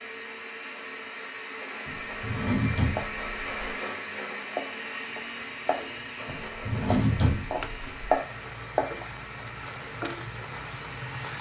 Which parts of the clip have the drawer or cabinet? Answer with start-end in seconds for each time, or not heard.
1.9-3.8, 6.2-8.1.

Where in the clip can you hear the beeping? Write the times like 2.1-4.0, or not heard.
not heard.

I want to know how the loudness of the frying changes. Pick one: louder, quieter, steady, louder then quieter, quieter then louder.
louder.